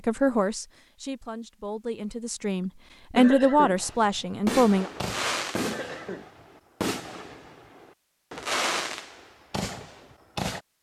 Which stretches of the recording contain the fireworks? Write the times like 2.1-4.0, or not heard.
3.8-10.6.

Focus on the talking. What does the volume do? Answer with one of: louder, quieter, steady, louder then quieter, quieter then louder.
louder then quieter.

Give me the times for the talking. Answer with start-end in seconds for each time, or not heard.
0.1-4.9.